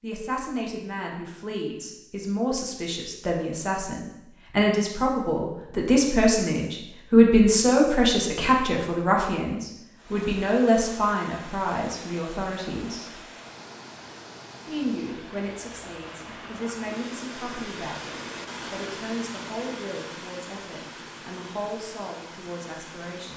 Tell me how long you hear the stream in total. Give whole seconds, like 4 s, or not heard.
13 s.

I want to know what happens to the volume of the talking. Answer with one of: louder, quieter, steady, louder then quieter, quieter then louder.
louder then quieter.